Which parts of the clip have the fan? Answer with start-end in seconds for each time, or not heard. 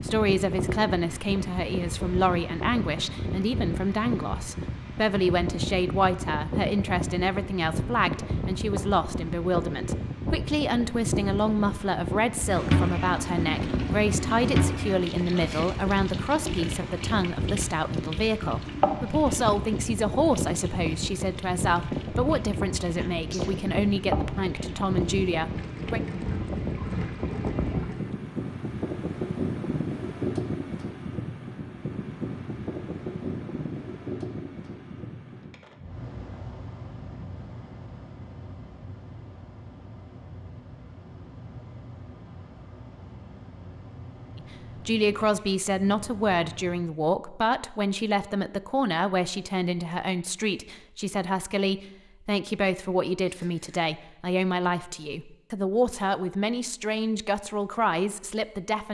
0.0-46.9.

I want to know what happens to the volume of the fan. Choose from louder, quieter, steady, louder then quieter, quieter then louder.
quieter.